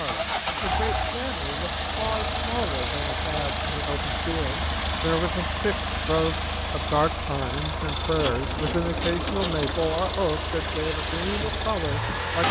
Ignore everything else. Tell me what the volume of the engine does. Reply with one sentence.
The loudness of the engine stays about the same.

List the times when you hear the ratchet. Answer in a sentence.
The ratchet can be heard from 8.2 to 10.0 s.